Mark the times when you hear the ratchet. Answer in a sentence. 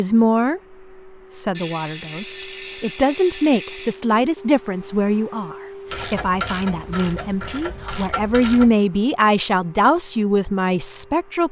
You can hear the ratchet from 1.5 to 4.0 s and from 5.9 to 8.8 s.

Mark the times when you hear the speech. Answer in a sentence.
The speech can be heard from 0.0 to 0.6 s and from 1.4 to 11.4 s.